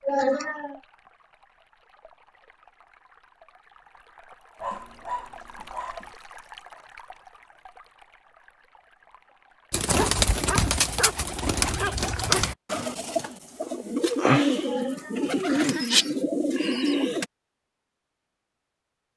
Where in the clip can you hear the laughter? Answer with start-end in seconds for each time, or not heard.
0.0-0.8, 14.6-16.6.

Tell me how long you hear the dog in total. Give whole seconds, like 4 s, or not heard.
4 s.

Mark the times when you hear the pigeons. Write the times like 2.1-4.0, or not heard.
9.7-17.2.